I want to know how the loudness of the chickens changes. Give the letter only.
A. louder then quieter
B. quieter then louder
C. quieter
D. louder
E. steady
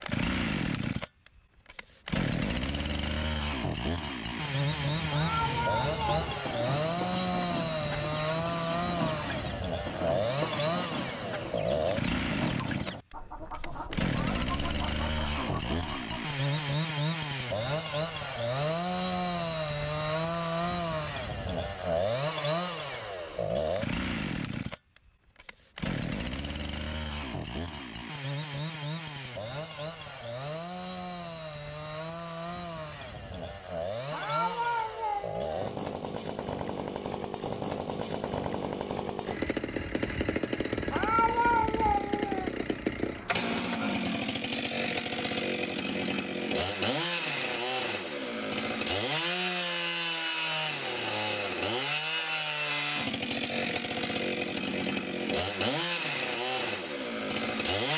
E.